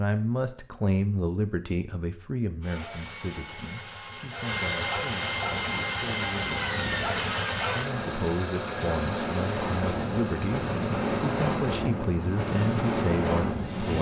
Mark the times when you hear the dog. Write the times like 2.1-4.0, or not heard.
not heard.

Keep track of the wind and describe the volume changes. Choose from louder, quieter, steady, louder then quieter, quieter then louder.
louder.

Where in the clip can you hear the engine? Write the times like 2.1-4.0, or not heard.
2.6-13.9.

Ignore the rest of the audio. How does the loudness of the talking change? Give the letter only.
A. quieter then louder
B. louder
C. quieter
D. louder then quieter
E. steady
A.